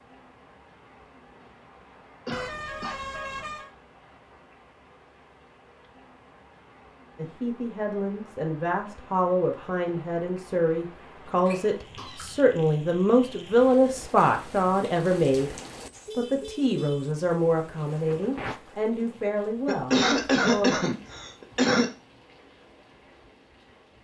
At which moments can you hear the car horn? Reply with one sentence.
The car horn can be heard from 2.3 to 3.7 s and from 15.9 to 17.1 s.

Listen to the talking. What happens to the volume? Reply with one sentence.
The loudness of the talking goes up, then down.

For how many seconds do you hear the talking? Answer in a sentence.
The talking can be heard for 13 seconds in total.